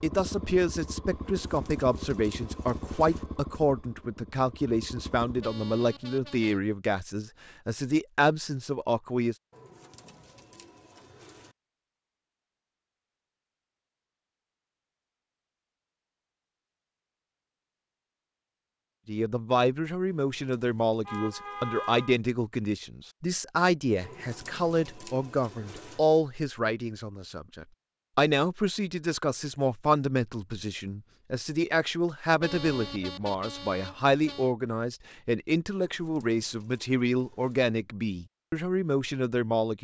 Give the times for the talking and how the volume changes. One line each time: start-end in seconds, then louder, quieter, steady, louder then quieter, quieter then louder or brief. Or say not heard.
0.0-9.3 steady
19.1-39.7 steady.